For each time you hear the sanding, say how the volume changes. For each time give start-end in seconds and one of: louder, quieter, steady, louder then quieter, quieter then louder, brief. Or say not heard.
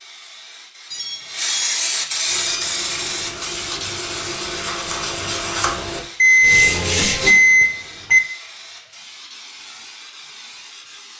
2.2-7.3 louder.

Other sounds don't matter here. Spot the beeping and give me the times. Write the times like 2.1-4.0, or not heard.
0.9-2.5, 6.2-8.2.